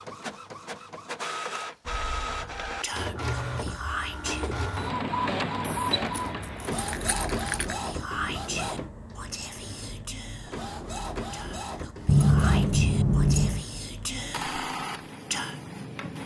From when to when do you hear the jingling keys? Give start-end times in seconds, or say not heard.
1.9-2.8, 5.7-7.8, 12.1-13.7.